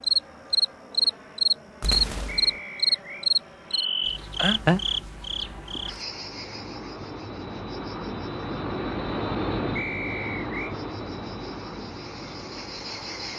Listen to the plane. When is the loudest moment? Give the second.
9 s.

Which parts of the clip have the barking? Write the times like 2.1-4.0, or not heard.
not heard.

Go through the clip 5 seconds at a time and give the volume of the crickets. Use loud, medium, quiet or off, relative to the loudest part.
loud, quiet, quiet.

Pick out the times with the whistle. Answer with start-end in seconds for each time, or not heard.
2.2-3.3, 9.8-10.8.